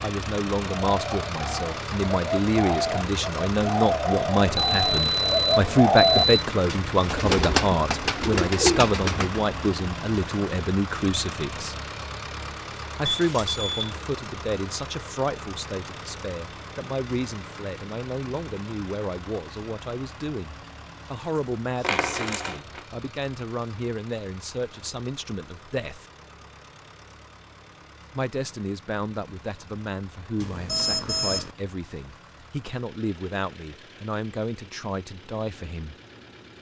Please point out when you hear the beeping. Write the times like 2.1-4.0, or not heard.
4.5-6.3, 13.1-13.9, 30.4-31.5.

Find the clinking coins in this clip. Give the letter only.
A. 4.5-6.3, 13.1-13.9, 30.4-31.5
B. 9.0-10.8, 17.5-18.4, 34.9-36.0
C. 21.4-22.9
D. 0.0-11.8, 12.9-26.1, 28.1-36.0
C.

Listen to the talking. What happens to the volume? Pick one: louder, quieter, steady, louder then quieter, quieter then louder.
quieter.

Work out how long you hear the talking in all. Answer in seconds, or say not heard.
33 s.